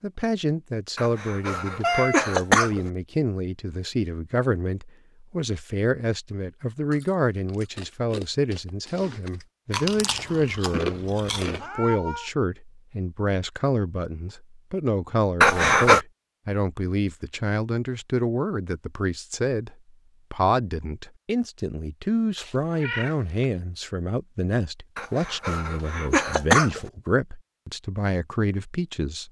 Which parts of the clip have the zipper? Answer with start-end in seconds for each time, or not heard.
not heard.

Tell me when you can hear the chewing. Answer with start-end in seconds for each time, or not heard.
6.9-11.7.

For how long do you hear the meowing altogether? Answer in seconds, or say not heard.
2 s.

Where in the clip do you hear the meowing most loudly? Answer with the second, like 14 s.
2 s.